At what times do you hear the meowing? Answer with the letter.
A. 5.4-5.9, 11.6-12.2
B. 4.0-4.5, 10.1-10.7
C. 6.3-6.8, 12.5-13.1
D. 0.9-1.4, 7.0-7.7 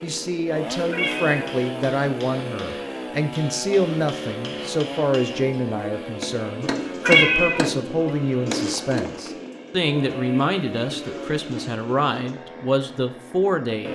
D.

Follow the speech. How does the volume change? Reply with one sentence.
The volume of the speech stays about the same.